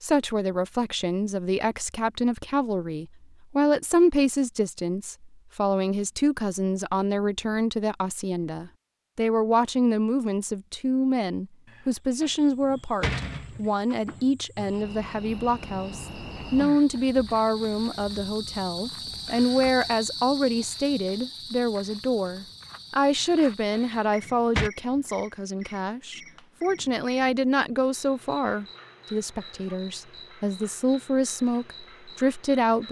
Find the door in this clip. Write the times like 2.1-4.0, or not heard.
11.7-13.6, 23.2-24.7.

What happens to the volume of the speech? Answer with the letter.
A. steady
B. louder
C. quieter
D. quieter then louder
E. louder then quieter
A.